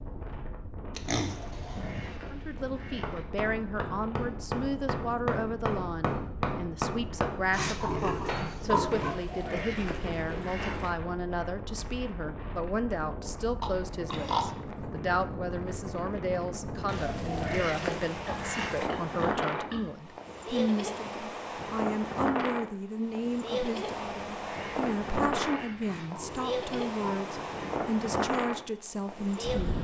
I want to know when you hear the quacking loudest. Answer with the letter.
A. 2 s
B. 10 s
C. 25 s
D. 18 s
D.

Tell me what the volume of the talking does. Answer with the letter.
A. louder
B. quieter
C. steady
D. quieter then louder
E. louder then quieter
C.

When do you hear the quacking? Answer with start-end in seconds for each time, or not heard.
1.2-3.2, 8.9-10.9, 16.9-18.9, 24.1-25.9.